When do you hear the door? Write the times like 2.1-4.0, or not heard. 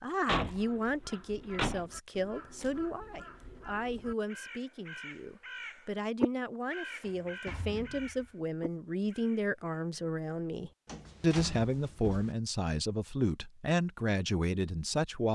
0.2-1.9, 7.0-8.3, 10.8-12.3.